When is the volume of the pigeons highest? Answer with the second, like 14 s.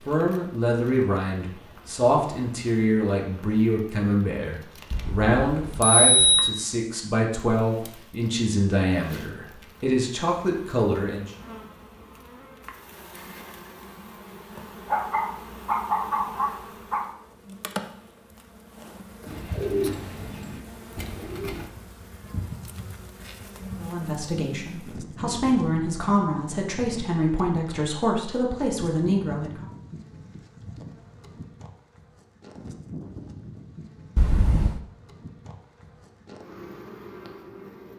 20 s.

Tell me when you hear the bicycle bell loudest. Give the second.
6 s.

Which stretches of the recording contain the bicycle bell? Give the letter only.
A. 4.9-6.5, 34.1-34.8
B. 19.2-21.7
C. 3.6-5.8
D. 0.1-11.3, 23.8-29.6
A.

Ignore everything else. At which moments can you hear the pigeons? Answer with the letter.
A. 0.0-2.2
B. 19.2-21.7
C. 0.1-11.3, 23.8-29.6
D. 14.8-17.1
B.